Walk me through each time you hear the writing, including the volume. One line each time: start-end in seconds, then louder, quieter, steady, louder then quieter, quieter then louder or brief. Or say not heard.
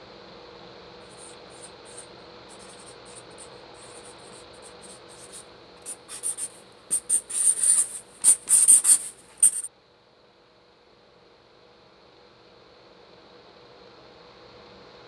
1.0-9.7 louder.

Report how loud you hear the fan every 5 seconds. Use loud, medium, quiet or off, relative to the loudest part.
loud, medium, medium.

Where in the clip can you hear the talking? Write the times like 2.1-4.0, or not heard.
not heard.